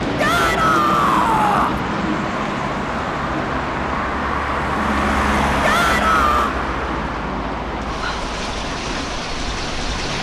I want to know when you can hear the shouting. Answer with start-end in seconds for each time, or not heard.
0.1-1.8, 5.6-6.5.